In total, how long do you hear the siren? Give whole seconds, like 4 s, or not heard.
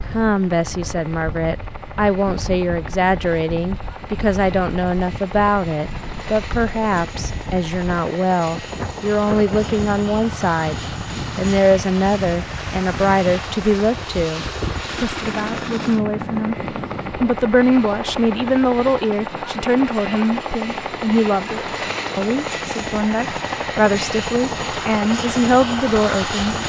not heard.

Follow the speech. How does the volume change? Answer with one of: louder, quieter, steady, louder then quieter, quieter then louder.
steady.